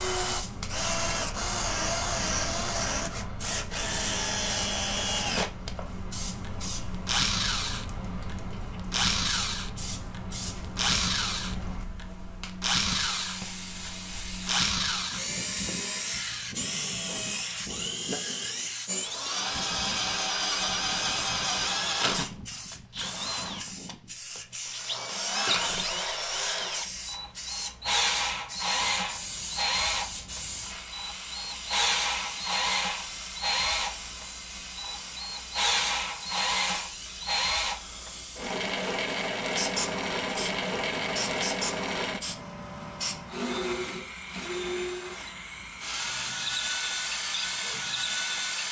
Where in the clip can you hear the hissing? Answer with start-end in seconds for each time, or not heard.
0.0-48.6.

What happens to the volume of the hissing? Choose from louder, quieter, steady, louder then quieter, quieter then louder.
steady.